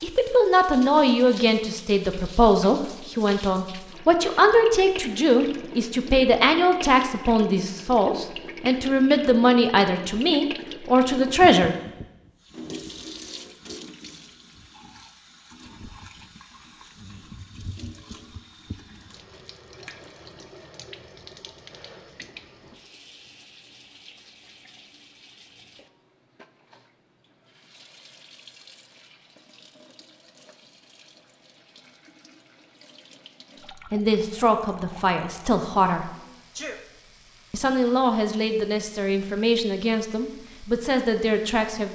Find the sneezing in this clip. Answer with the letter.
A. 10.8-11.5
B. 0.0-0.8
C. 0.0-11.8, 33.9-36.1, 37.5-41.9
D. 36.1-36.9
D.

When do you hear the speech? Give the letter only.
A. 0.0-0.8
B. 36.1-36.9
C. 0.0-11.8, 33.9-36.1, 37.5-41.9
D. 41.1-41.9
C.